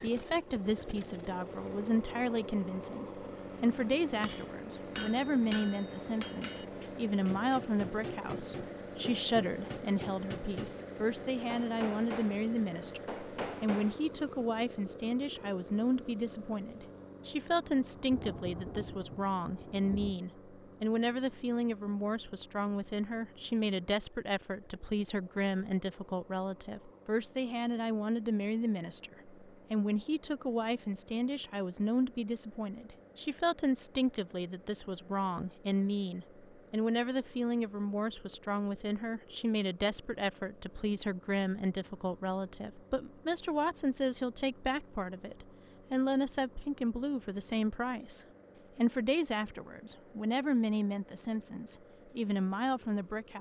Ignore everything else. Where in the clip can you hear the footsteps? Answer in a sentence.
You can't hear the footsteps here.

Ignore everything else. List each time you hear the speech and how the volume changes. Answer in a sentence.
You can hear the speech from 0.0 to 53.3 s, at a steady volume.